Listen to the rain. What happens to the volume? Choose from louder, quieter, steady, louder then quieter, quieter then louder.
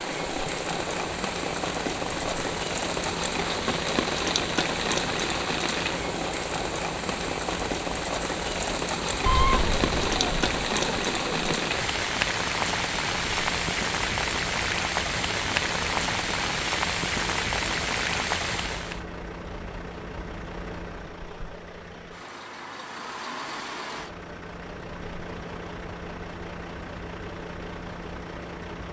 steady.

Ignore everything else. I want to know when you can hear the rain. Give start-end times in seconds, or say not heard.
0.0-19.1.